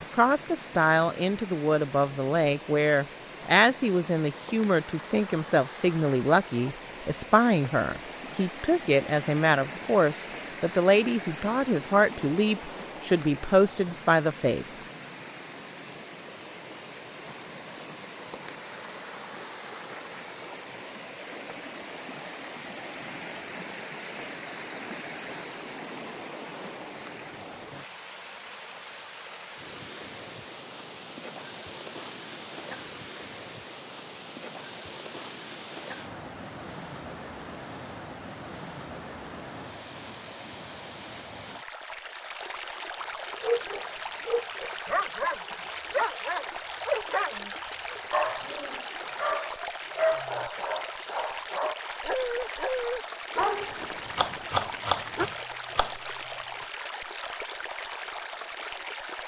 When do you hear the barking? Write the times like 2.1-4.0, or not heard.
43.4-55.3.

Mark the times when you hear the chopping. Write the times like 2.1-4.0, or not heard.
54.1-56.4.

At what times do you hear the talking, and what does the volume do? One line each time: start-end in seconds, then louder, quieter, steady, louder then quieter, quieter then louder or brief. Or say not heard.
0.1-14.8 steady.